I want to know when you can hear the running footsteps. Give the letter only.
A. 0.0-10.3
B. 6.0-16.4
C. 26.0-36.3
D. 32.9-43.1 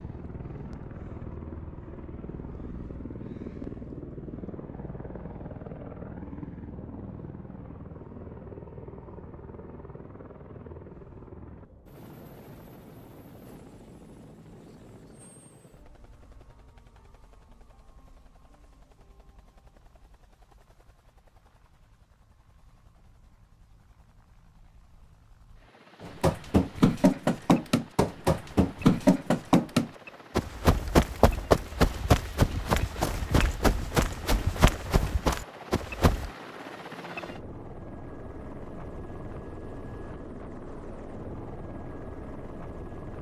C.